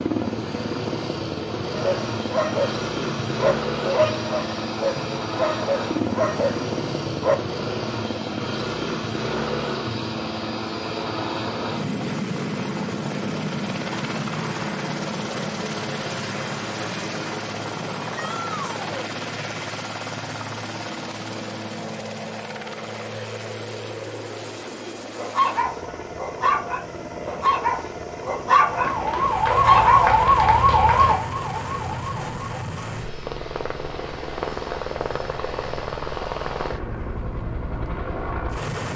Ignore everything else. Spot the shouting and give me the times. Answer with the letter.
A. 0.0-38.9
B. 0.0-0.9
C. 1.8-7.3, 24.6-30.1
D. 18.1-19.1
D.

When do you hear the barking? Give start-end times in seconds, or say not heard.
1.8-7.3, 24.6-30.1.